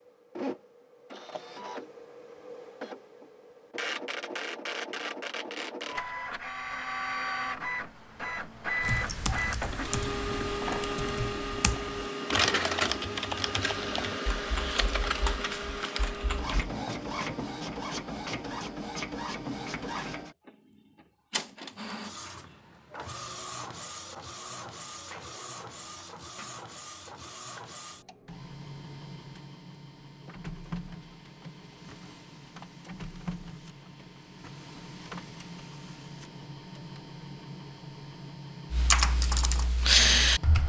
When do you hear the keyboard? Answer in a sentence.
You can hear the keyboard from 8.8 to 16.7 s and from 38.7 to 40.6 s.